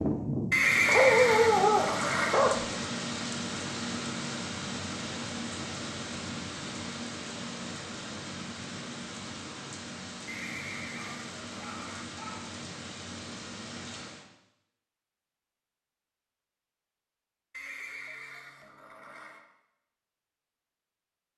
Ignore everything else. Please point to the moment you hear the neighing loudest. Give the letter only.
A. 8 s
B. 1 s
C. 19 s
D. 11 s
B.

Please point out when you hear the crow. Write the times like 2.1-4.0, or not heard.
not heard.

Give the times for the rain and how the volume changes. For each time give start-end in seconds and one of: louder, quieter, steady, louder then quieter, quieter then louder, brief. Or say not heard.
0.0-14.3 quieter.